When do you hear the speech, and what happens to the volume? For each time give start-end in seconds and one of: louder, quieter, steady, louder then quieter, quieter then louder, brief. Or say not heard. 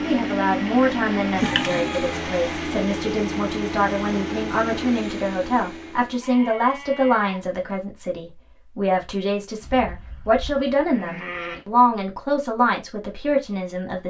0.0-14.0 steady.